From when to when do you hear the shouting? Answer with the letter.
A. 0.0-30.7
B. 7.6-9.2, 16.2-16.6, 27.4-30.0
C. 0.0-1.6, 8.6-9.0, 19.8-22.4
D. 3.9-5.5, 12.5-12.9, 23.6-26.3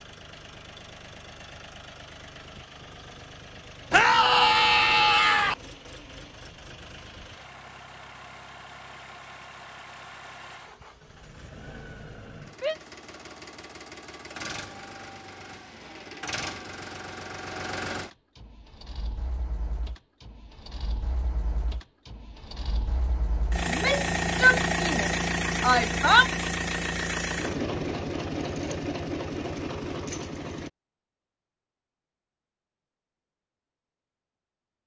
D.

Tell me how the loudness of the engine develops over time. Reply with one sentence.
The volume of the engine goes up.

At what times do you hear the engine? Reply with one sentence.
You can hear the engine from 0.0 to 30.7 s.